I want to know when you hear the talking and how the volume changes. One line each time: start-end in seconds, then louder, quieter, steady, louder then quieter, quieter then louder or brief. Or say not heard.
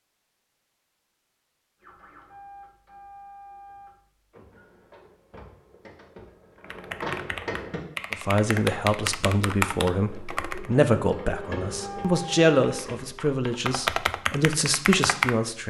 8.1-15.6 steady.